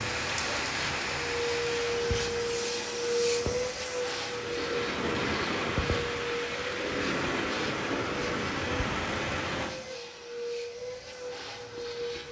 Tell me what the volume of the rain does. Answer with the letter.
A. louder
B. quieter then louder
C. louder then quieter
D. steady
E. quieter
B.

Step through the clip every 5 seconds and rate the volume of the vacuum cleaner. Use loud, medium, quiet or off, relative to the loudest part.
loud, medium, medium.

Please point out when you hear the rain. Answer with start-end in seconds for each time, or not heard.
0.0-9.8.